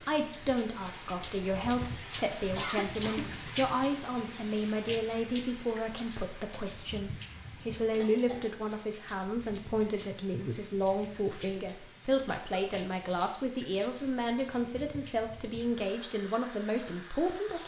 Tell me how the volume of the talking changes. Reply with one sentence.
The volume of the talking stays about the same.